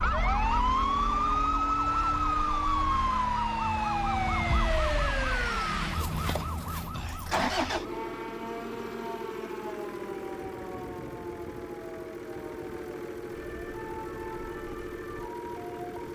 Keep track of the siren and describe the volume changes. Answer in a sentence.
The loudness of the siren goes down.